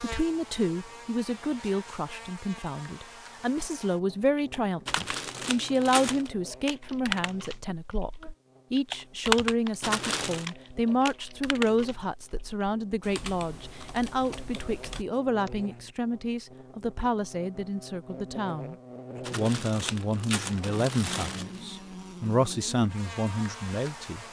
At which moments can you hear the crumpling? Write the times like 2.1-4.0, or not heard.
4.8-6.3, 9.8-10.4, 19.2-21.6.